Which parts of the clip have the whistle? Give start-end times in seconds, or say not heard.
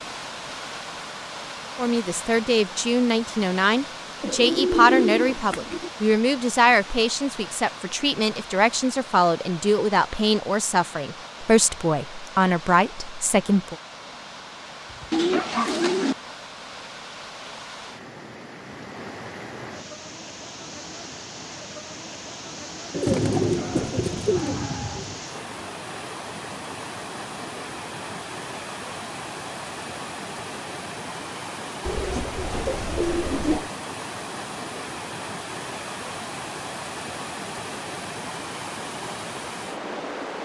not heard.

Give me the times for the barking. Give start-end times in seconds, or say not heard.
14.9-16.0, 23.6-25.0.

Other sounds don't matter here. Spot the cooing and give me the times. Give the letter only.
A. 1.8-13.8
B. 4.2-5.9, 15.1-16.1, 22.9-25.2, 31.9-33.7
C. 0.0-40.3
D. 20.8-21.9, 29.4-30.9
B.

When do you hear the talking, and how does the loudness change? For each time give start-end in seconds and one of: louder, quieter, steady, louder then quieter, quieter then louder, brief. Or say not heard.
1.8-13.8 steady.